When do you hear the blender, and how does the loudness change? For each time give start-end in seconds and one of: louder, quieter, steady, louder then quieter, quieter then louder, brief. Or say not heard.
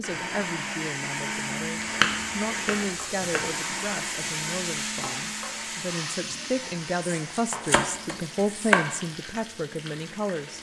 0.0-10.5 quieter.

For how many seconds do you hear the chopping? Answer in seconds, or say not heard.
3 s.